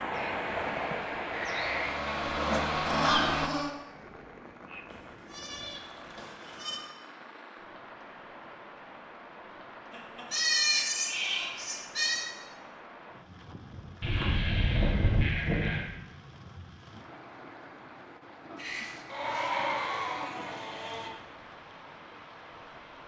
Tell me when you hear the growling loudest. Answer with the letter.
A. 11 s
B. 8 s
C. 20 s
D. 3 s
D.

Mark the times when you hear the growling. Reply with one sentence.
You can hear the growling from 2.2 to 3.7 s and from 18.6 to 19.7 s.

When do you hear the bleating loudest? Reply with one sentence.
The volume of the bleating peaks at 11 seconds.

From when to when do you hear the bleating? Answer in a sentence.
The bleating can be heard from 0.1 to 2.1 s, from 4.9 to 6.8 s, from 9.9 to 12.2 s, from 14.0 to 15.8 s and from 19.1 to 21.1 s.